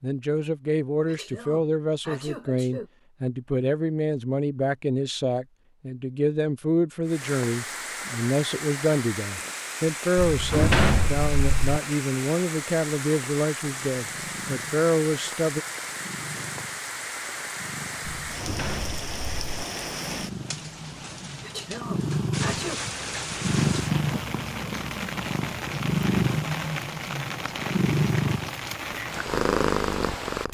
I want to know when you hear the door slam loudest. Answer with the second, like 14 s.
11 s.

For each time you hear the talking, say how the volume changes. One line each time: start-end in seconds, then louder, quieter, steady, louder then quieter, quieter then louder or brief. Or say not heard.
0.0-15.6 steady.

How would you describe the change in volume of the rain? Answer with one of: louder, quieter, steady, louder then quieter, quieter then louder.
steady.